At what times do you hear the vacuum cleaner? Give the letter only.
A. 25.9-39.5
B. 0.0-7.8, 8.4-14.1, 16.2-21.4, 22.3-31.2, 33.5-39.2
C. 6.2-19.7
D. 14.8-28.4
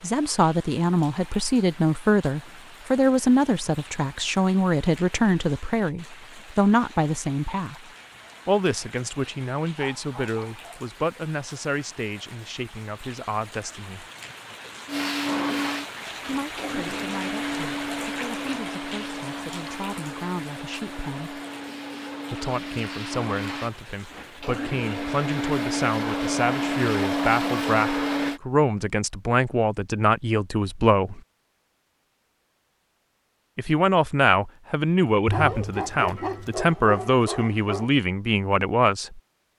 D.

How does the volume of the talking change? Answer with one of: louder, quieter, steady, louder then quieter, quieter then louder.
quieter then louder.